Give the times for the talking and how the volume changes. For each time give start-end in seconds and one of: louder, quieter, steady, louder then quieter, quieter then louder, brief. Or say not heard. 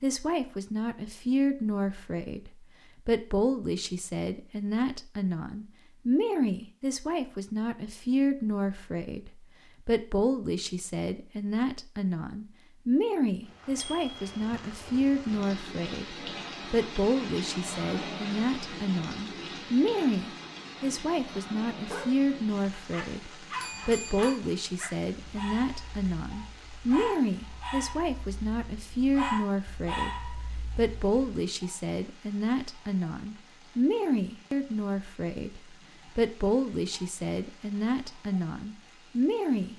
0.0-39.7 steady.